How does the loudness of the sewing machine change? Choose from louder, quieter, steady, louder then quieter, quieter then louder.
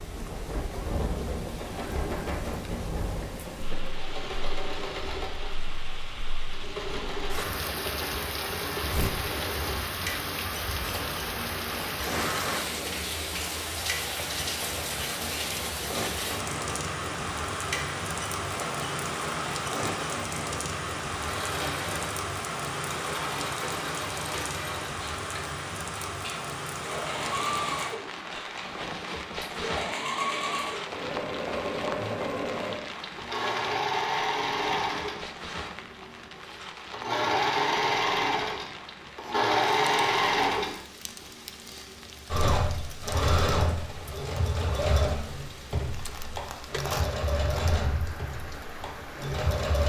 louder.